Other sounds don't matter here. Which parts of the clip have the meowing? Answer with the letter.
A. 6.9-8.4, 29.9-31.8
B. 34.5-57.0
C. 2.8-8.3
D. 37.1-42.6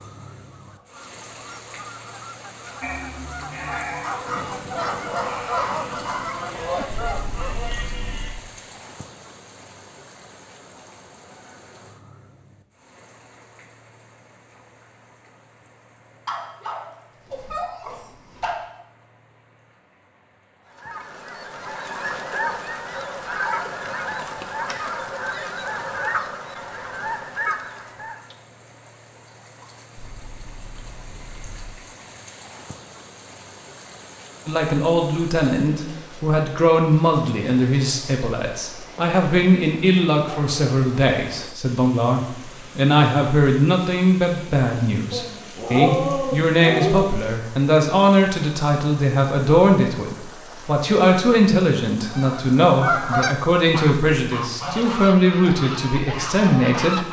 A.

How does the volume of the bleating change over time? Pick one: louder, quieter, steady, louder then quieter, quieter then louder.
quieter.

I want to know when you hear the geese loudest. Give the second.
53 s.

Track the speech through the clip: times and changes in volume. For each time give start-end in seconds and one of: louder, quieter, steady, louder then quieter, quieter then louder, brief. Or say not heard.
34.5-57.0 steady.